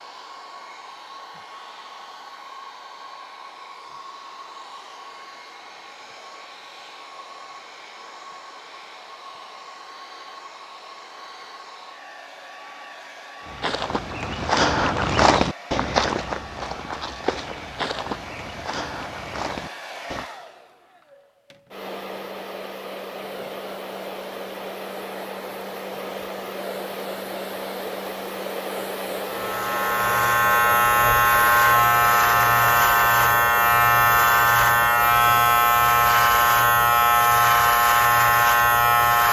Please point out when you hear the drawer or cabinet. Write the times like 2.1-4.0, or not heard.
not heard.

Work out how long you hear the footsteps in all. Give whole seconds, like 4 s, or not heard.
7 s.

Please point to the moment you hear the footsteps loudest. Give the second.
15 s.